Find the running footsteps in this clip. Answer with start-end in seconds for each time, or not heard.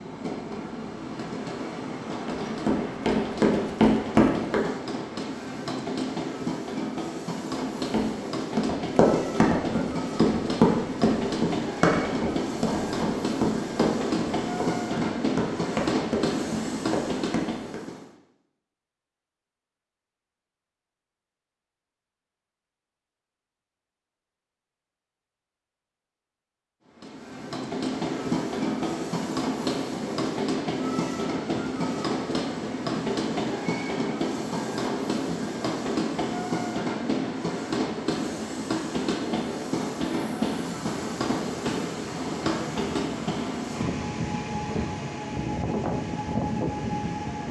2.2-4.6, 7.5-17.8.